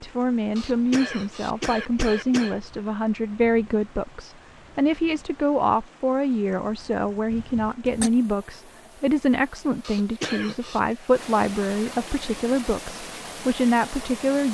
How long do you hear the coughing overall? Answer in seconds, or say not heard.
4 s.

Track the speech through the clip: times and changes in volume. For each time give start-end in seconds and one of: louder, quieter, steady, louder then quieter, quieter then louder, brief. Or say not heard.
0.0-14.4 steady.